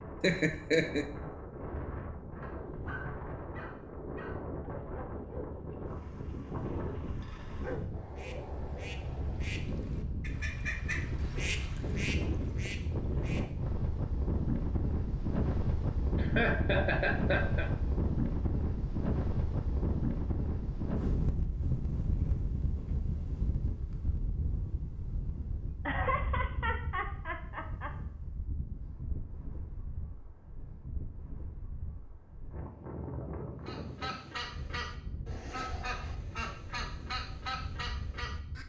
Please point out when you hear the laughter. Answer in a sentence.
The laughter can be heard from 0.2 to 1.1 s, from 16.1 to 17.7 s and from 25.9 to 27.9 s.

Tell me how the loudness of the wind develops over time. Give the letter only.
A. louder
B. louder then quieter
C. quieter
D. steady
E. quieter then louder
B.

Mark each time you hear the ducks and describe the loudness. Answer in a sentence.
You can hear the ducks from 8.0 to 13.8 s, getting louder then quieter; and from 33.6 to 38.6 s, at a steady volume.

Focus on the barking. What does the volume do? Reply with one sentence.
The volume of the barking goes down, then up.